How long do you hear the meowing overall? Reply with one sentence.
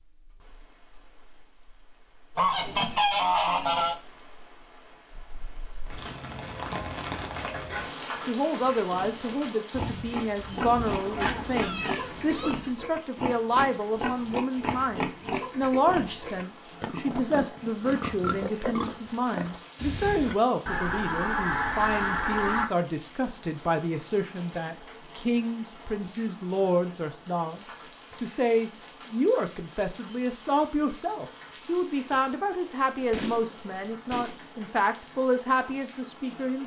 You can hear the meowing for 2 seconds altogether.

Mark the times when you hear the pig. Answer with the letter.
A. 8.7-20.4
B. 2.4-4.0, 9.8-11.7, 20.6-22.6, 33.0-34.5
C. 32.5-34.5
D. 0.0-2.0
A.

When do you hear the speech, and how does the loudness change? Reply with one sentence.
You can hear the speech from 7.7 to 36.6 s, at a steady volume.